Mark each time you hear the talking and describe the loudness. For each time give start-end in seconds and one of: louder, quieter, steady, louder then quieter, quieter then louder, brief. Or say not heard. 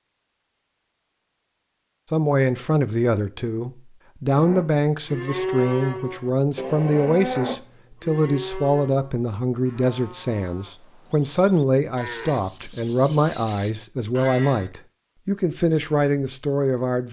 2.1-17.0 steady.